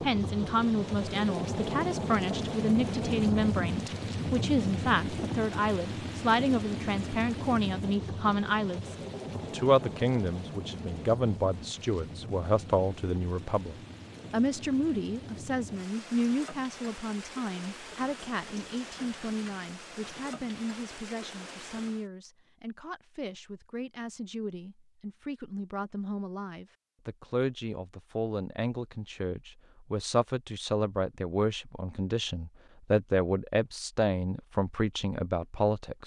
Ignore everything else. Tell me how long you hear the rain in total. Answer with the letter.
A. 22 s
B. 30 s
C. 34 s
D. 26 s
A.